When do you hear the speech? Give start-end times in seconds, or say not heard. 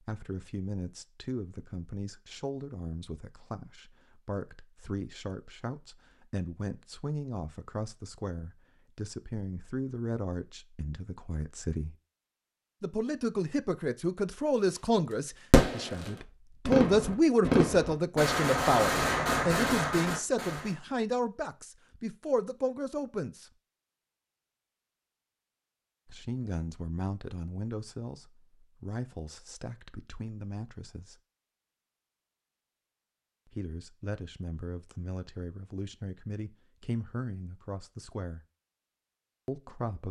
0.0-11.9, 12.8-23.5, 26.1-31.1, 33.5-38.5, 39.5-40.0.